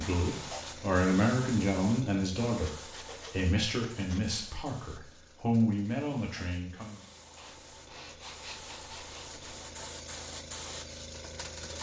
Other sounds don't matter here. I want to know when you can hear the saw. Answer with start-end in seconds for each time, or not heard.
2.6-4.2, 7.3-9.9.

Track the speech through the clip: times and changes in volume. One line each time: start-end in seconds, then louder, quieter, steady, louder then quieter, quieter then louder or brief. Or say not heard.
0.0-7.0 quieter then louder.